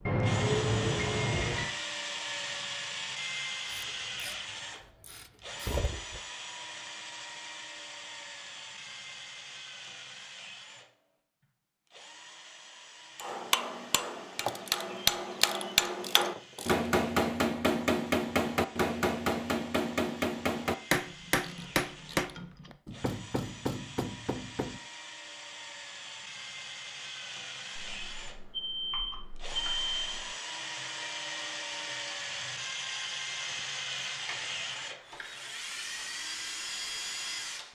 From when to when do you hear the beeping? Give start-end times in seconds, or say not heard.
0.1-1.7, 27.8-30.2.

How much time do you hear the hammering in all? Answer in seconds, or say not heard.
12 s.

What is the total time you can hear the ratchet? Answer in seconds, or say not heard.
9 s.